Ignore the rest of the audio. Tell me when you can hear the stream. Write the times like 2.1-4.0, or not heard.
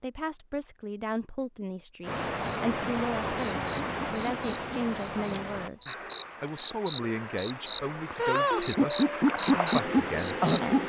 2.0-10.8.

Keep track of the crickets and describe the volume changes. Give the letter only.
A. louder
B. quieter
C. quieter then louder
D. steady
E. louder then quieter
A.